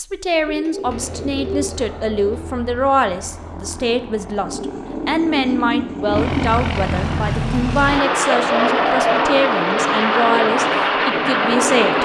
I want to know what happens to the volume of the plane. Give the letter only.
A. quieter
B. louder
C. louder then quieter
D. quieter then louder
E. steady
B.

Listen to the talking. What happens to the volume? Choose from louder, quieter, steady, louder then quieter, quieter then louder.
steady.